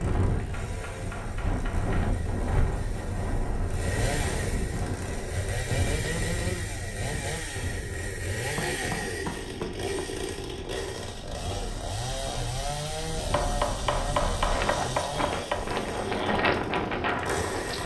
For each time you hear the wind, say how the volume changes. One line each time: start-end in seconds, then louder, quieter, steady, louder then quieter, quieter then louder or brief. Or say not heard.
0.0-17.8 quieter then louder.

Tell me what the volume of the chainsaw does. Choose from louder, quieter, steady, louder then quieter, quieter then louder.
louder.